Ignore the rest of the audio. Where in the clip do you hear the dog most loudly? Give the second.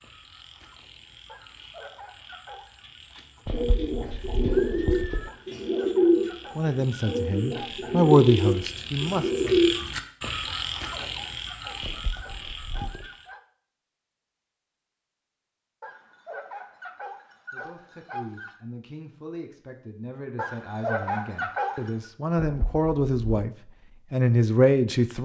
21 s.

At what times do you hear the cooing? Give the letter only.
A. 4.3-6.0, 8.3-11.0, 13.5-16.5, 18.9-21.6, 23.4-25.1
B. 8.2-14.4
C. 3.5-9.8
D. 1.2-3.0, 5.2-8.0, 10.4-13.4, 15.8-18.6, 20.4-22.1
C.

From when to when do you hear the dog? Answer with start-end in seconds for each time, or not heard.
1.2-3.0, 5.2-8.0, 10.4-13.4, 15.8-18.6, 20.4-22.1.